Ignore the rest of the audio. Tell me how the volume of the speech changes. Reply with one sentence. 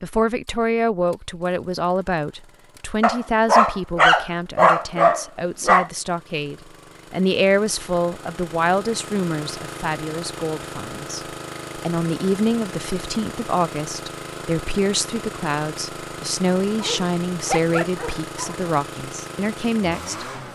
The loudness of the speech stays about the same.